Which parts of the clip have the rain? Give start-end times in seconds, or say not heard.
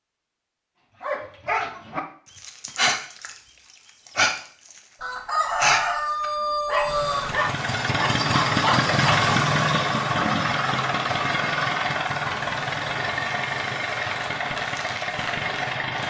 6.8-16.0.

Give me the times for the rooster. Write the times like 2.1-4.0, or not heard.
5.0-7.4.